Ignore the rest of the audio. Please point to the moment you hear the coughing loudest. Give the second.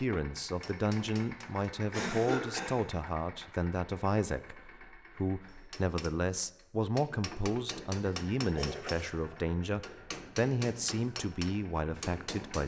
2 s.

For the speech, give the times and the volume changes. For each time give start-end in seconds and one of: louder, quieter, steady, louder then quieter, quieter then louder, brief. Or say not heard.
0.0-12.6 steady.